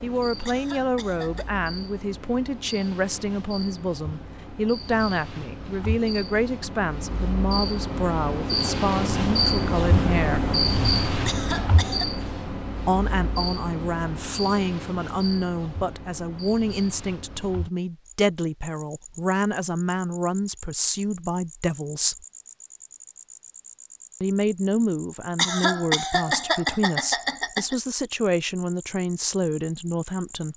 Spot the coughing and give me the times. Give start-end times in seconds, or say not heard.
0.5-1.5, 11.2-12.1, 25.4-27.8.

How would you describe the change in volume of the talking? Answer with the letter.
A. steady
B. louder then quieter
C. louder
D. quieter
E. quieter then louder
A.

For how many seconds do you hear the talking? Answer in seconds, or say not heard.
26 s.